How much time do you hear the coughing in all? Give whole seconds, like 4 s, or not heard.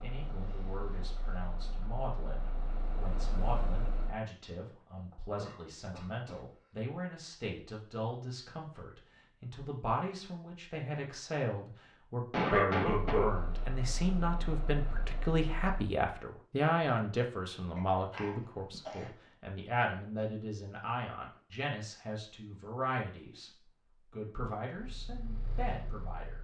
4 s.